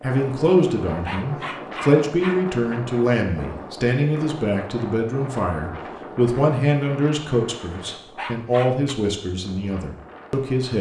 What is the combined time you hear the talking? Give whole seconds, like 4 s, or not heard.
11 s.